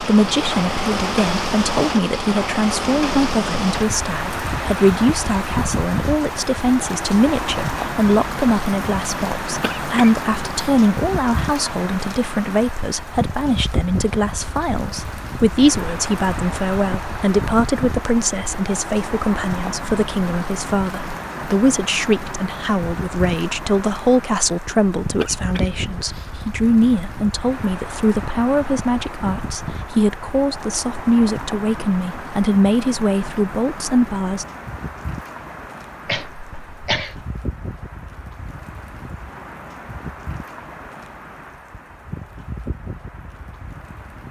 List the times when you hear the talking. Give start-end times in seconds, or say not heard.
0.0-34.5.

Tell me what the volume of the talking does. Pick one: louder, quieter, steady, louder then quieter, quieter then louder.
steady.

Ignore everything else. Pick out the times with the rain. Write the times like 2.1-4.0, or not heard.
0.0-44.2.